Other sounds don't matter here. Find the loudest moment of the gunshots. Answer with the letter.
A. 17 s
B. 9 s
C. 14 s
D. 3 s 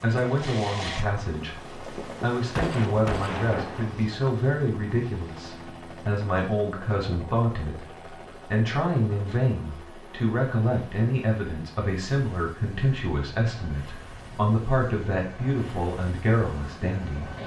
D.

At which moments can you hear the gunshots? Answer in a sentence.
You can hear the gunshots from 2.5 to 4.3 s.